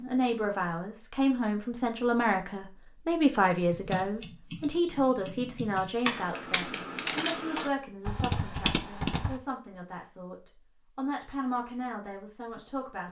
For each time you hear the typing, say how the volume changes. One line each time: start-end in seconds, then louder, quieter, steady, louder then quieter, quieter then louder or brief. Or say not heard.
3.7-9.3 louder.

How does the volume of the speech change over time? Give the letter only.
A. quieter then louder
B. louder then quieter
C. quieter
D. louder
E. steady
C.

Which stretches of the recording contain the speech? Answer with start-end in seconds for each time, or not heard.
0.0-13.0.